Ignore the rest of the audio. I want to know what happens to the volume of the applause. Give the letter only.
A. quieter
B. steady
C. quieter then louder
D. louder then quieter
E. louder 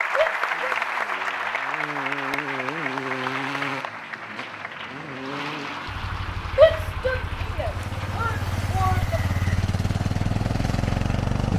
A.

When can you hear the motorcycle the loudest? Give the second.
11 s.